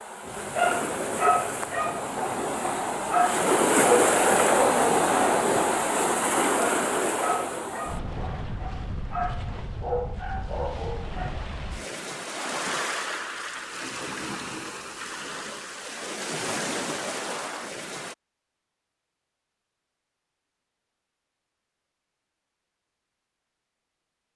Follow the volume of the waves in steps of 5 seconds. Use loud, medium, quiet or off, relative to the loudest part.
loud, loud, medium, medium, off.